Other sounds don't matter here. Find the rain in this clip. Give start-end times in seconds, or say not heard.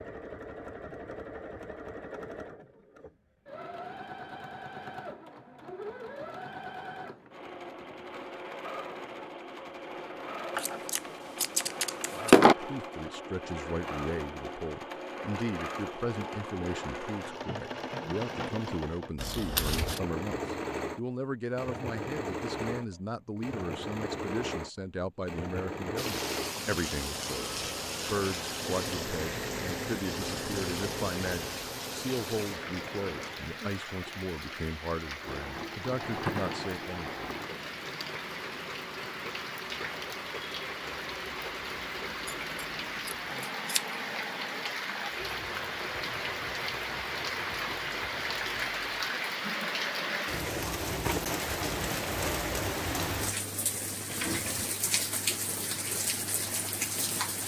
25.9-57.4.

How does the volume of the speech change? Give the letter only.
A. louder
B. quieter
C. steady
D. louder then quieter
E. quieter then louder
C.